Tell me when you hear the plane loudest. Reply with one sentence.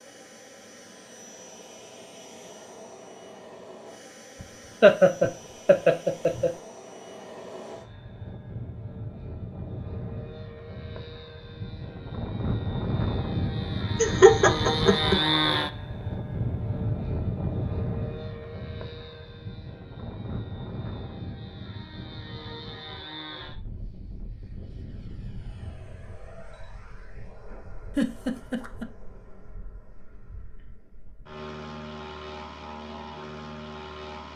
The loudest moment of the plane is at 15 seconds.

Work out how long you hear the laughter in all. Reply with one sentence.
The laughter can be heard for 4 seconds in total.